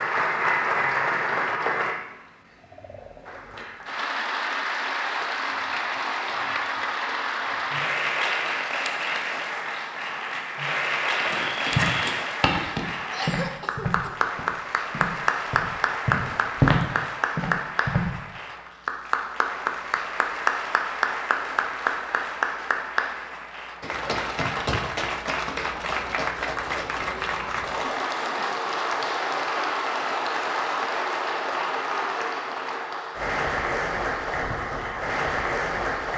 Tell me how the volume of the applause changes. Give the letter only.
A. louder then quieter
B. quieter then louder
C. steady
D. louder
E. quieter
C.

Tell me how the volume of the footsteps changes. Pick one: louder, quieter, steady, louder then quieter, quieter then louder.
quieter then louder.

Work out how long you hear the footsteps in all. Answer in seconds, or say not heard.
7 s.